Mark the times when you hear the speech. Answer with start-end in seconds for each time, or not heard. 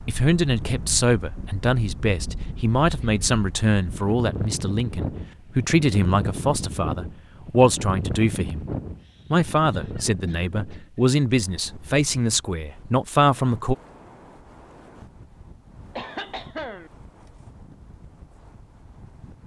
0.1-8.7, 9.3-13.8.